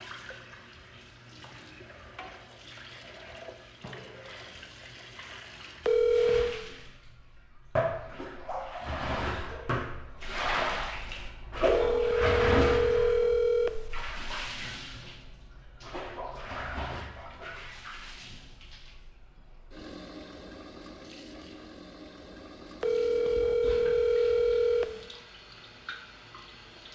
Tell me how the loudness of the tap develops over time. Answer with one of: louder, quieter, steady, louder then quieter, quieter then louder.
louder then quieter.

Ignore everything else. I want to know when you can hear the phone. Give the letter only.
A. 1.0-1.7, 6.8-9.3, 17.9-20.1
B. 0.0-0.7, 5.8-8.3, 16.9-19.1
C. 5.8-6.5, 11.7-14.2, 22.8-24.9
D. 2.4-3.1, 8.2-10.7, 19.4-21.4
C.